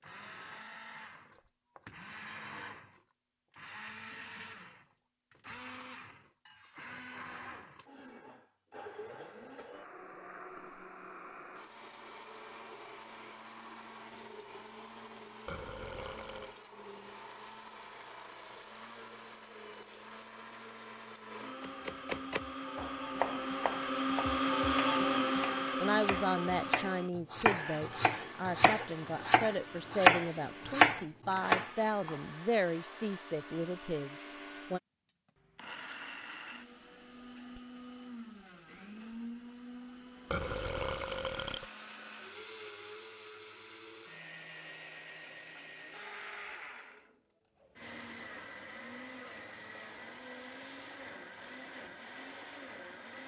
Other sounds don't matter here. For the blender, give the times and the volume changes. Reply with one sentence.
The blender can be heard from 0.0 to 53.2 s, getting louder then quieter.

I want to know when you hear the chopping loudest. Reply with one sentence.
The volume of the chopping peaks at 30 seconds.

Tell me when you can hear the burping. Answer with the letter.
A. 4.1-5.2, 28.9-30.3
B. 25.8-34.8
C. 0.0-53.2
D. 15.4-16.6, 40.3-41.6
D.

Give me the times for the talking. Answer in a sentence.
You can hear the talking from 25.8 to 34.8 s.